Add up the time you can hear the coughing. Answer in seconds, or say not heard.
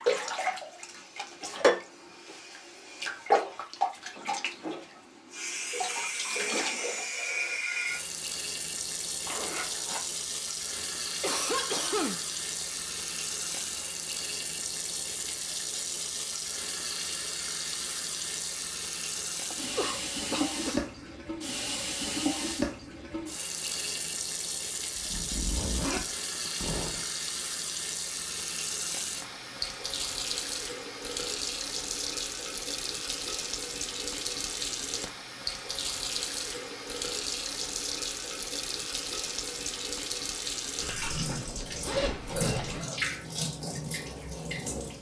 4 s.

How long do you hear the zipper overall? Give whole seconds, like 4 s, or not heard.
5 s.